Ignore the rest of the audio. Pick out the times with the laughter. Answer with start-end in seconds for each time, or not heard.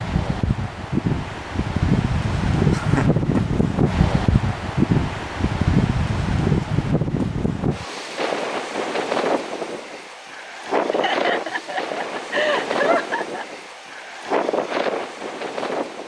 2.7-3.2, 10.9-13.4.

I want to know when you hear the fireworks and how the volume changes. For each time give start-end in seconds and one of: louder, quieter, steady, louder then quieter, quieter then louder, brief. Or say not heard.
not heard.